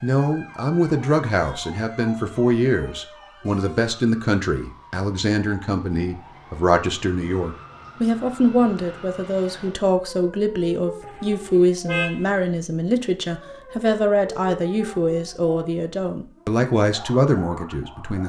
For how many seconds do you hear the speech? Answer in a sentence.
The speech can be heard for 18 seconds in total.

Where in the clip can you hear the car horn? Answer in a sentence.
The car horn can be heard from 11.0 to 12.3 s.